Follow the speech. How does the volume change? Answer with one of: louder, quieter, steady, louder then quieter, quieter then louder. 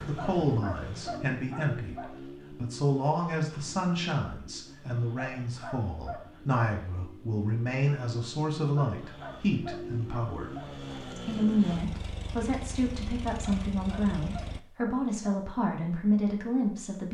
steady.